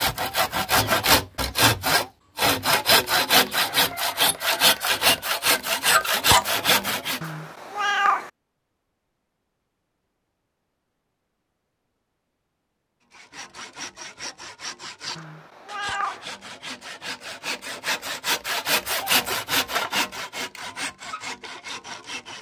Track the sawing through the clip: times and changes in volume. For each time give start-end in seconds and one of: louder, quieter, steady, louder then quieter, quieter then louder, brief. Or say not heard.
0.0-7.2 steady
13.1-22.3 louder then quieter.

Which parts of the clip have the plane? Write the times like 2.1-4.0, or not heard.
not heard.